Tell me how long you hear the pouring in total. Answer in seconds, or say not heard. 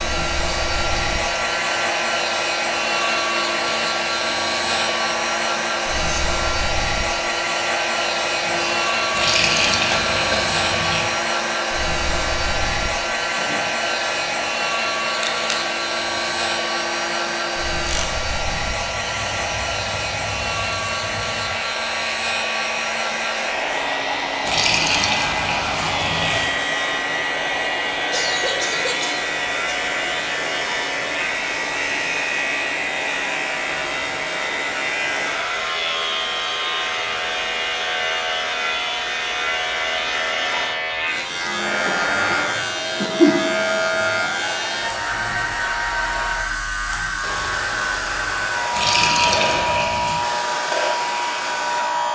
6 s.